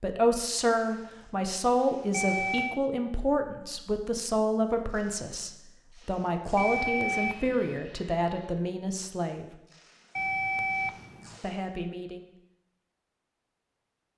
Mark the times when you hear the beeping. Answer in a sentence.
You can hear the beeping from 2.1 to 2.8 s, from 6.5 to 7.8 s and from 10.2 to 11.3 s.